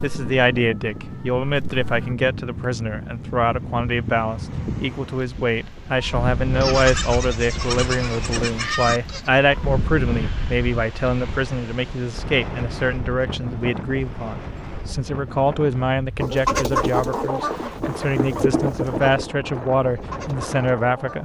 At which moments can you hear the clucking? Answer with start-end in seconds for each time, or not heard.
0.0-2.1, 16.1-21.1.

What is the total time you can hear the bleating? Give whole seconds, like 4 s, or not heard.
3 s.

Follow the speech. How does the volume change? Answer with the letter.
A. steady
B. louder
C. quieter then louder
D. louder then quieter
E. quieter
A.